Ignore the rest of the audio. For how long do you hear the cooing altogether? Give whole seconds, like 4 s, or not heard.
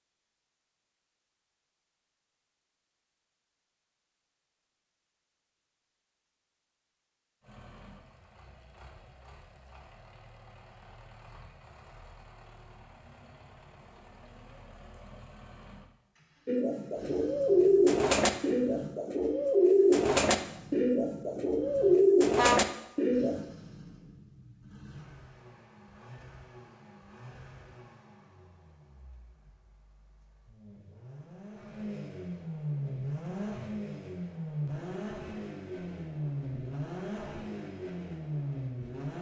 7 s.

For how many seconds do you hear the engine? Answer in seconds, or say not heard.
32 s.